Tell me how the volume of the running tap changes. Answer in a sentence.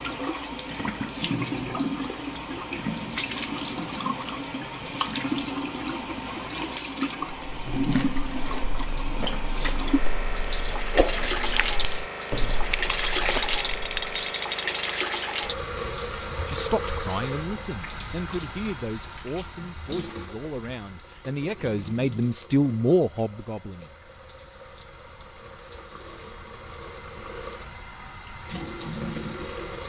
The loudness of the running tap goes down.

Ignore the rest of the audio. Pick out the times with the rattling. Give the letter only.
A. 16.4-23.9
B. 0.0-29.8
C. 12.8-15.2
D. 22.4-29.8
C.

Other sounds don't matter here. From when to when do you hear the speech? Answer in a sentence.
The speech can be heard from 16.4 to 23.9 s.